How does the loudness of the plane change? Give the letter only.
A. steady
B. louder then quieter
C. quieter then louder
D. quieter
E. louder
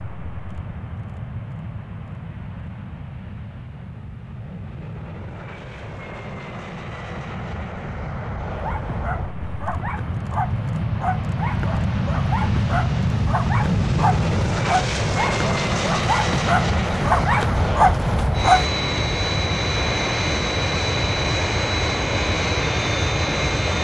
E.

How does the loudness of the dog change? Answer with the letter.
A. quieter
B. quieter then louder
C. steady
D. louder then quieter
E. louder
E.